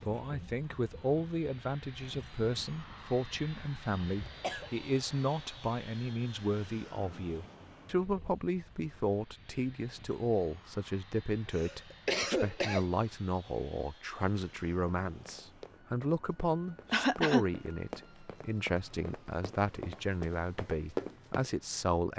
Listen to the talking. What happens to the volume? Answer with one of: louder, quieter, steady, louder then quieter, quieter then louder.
steady.